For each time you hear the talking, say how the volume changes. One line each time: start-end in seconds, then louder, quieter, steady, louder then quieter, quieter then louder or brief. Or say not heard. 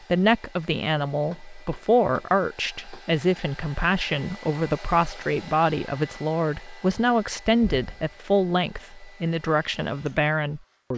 0.1-10.9 steady.